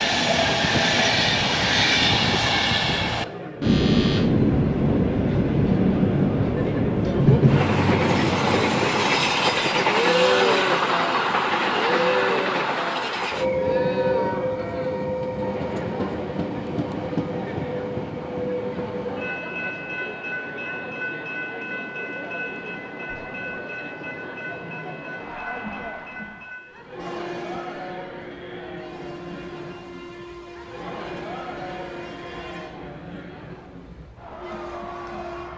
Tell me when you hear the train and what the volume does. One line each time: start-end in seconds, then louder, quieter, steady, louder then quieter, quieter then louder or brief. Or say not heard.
0.0-35.5 quieter.